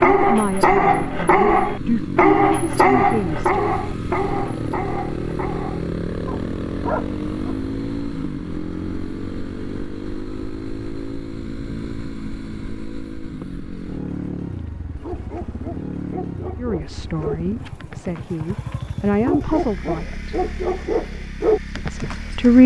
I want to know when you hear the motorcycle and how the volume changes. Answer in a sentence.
The motorcycle can be heard from 0.0 to 22.6 s, getting quieter.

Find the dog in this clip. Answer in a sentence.
You can hear the dog from 0.0 to 7.5 s and from 14.6 to 22.5 s.